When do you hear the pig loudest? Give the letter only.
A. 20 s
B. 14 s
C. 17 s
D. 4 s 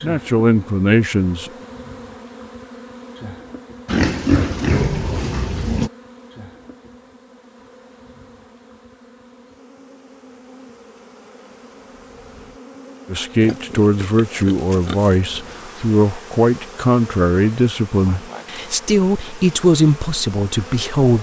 D.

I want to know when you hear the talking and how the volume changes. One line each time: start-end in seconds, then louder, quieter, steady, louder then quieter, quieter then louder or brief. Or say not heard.
0.0-1.5 brief
13.1-21.1 steady.